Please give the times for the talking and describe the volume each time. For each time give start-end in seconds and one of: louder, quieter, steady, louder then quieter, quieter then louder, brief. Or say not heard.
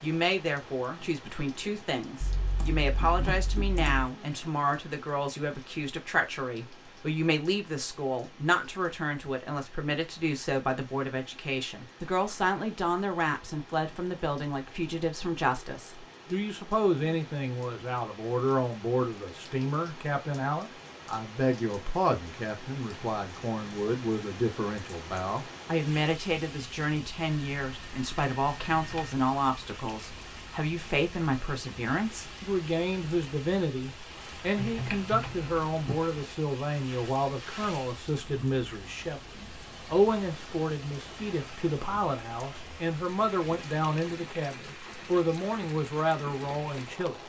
0.0-47.2 steady.